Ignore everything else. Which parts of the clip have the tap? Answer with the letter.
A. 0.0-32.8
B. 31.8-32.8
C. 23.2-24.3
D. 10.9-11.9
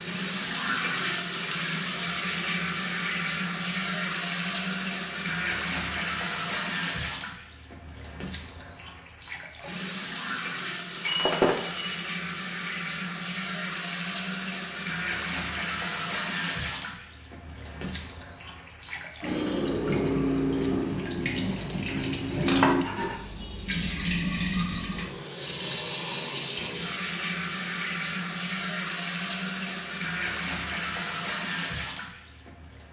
A.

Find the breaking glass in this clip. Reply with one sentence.
The breaking glass can be heard from 10.9 to 11.9 s.